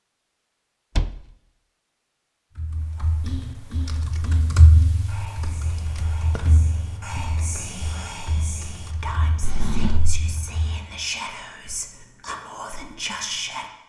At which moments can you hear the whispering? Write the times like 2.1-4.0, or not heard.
3.0-13.7.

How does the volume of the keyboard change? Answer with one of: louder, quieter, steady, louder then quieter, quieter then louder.
louder then quieter.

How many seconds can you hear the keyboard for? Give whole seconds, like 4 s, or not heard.
8 s.